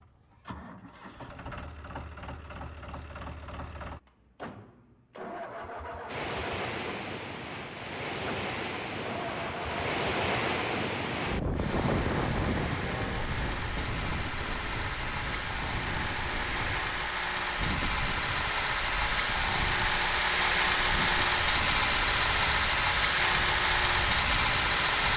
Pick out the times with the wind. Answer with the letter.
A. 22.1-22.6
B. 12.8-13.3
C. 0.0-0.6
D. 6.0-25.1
D.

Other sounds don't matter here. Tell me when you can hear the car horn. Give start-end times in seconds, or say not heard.
12.8-13.3.